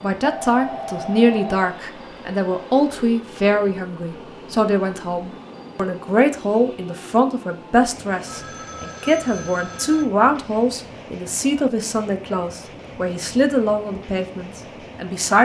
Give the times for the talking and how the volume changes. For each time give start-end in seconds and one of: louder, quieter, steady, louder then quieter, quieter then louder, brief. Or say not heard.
0.0-15.3 steady.